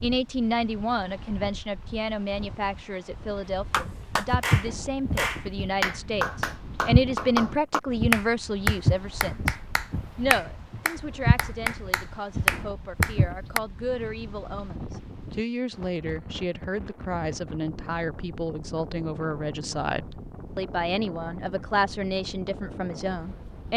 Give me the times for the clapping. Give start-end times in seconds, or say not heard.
3.7-13.6.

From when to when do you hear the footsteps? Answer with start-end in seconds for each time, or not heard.
3.9-7.1, 8.0-11.4, 12.3-13.3.